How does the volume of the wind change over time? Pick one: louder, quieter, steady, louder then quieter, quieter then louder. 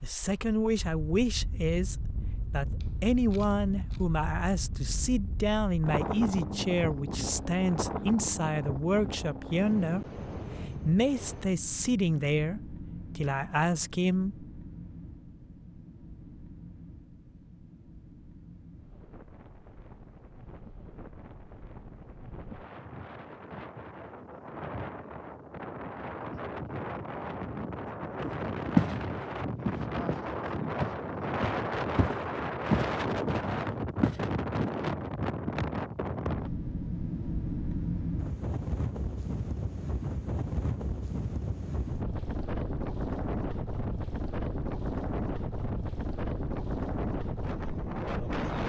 quieter then louder.